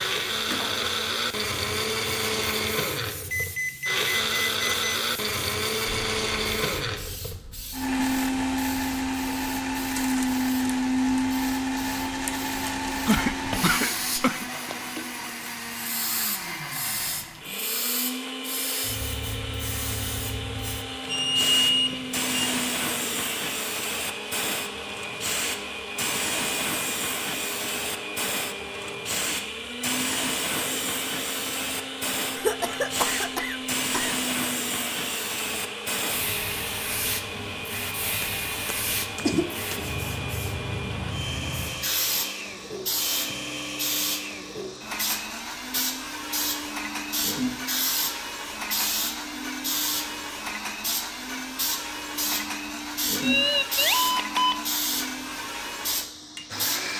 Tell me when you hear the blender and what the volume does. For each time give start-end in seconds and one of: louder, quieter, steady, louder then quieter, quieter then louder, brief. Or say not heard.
0.0-56.9 quieter.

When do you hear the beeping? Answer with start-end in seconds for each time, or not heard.
3.3-4.8, 21.1-22.4, 53.2-54.5.